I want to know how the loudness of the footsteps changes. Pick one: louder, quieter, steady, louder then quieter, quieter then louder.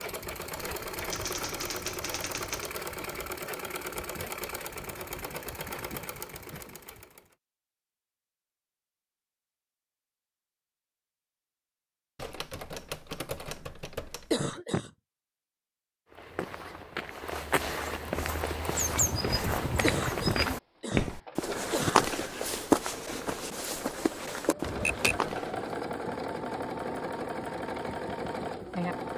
louder then quieter.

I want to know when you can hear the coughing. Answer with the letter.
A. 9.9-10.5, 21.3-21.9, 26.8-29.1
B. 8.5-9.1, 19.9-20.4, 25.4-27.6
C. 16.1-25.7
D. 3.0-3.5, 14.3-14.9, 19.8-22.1
D.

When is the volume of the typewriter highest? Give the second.
25 s.